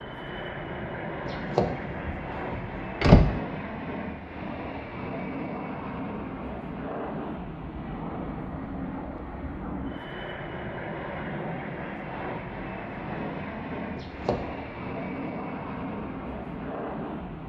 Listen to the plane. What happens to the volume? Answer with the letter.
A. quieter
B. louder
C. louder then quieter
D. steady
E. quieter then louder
D.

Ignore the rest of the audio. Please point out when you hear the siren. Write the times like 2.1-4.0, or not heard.
not heard.